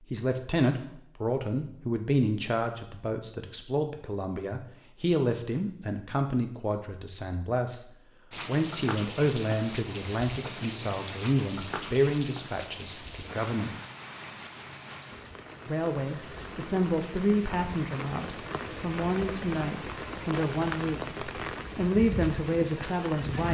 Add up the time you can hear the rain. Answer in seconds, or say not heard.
15 s.